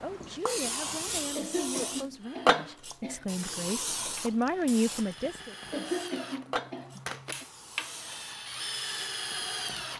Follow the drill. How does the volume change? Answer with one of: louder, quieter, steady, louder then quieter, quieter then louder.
louder.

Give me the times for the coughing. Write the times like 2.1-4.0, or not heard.
1.4-3.2, 5.7-7.5.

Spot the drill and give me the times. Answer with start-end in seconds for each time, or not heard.
2.1-9.9.